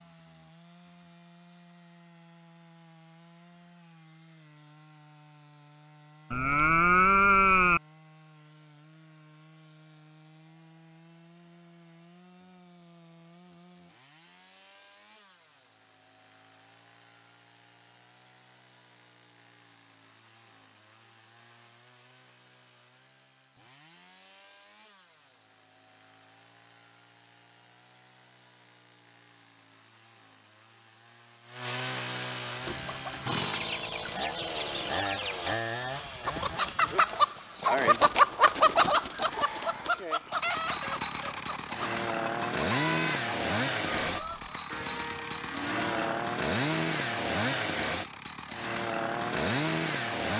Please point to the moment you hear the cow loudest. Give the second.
7 s.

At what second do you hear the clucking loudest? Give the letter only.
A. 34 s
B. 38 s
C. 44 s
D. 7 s
B.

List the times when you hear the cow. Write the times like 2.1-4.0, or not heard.
6.3-7.8, 44.7-46.2.